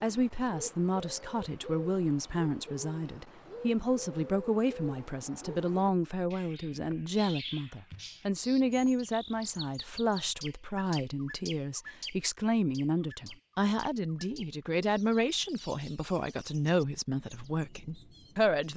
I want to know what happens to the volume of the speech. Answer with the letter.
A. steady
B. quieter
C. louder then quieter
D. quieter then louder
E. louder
A.